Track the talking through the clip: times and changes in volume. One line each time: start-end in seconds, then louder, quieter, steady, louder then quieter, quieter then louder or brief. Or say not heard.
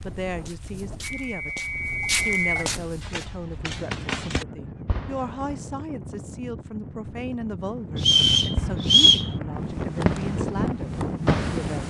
0.0-1.6 brief
2.2-11.8 steady.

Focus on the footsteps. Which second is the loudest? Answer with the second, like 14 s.
2 s.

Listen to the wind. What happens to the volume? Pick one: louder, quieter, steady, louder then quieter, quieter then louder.
louder.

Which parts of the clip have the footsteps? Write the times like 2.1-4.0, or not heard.
0.0-3.2.